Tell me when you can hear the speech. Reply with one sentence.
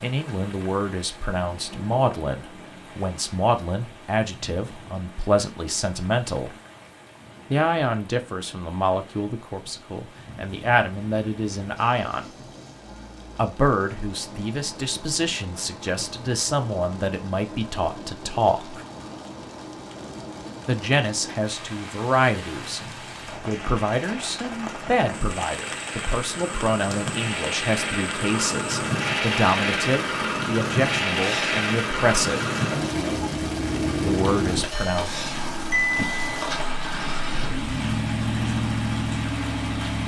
The speech can be heard from 0.0 to 6.5 s, from 7.5 to 12.2 s, from 13.3 to 18.8 s, from 20.6 to 22.8 s, from 23.4 to 32.5 s and from 34.0 to 35.1 s.